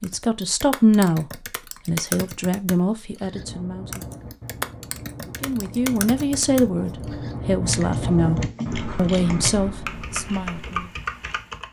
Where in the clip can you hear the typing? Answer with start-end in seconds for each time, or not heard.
0.0-11.6.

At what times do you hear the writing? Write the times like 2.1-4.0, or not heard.
3.3-10.9.